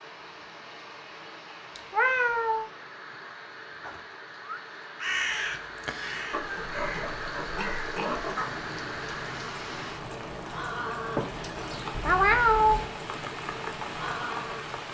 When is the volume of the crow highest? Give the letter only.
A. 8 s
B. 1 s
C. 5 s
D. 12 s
C.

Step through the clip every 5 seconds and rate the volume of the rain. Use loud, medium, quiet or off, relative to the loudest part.
medium, loud, loud.